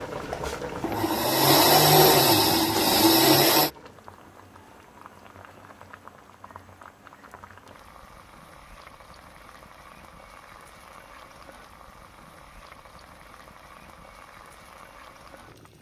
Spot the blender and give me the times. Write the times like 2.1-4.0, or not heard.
0.1-3.7.